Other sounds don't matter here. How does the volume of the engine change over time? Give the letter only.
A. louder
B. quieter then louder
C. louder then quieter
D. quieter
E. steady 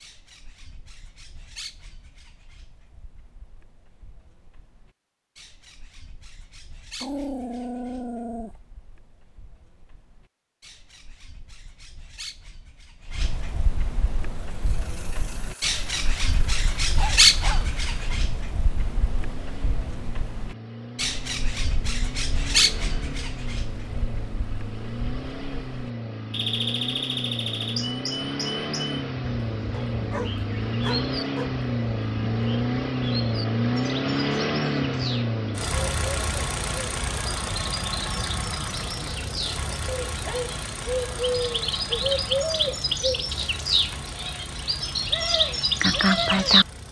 C.